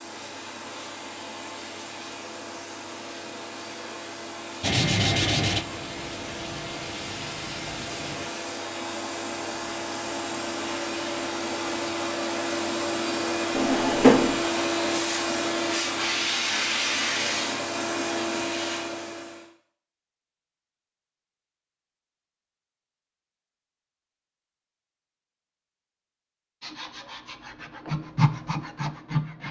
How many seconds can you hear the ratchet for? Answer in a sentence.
You can't hear the ratchet here.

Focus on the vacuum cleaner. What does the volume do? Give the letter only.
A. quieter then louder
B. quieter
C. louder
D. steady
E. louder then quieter
C.